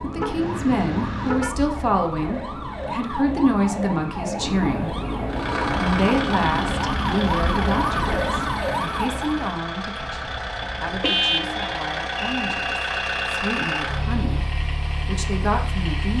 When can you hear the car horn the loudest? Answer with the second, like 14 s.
11 s.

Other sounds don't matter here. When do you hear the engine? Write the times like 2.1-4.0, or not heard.
5.2-16.1.